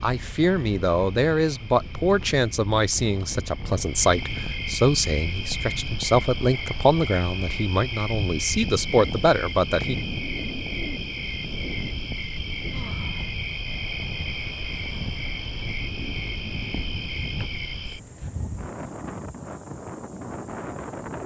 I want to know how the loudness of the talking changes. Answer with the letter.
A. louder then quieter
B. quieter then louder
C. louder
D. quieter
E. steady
E.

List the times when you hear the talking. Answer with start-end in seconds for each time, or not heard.
0.0-9.9.